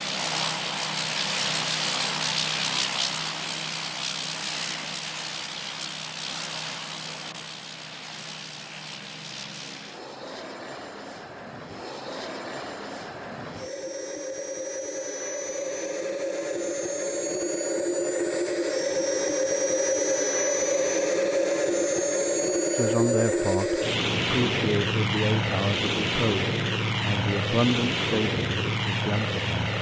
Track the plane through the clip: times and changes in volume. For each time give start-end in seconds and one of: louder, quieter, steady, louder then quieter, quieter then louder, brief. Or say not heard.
0.0-29.7 quieter then louder.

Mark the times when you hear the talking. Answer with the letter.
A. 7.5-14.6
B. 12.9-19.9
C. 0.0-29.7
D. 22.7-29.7
D.